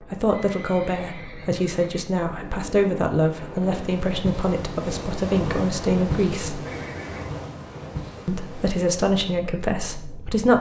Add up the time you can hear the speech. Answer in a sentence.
You can hear the speech for 9 seconds altogether.